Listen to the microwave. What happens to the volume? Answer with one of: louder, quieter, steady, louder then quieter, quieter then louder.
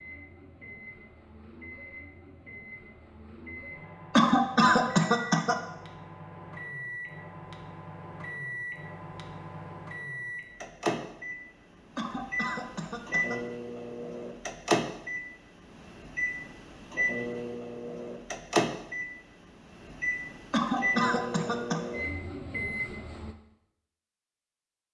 louder.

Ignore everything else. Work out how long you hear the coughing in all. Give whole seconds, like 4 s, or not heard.
4 s.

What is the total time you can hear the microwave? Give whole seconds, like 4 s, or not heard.
23 s.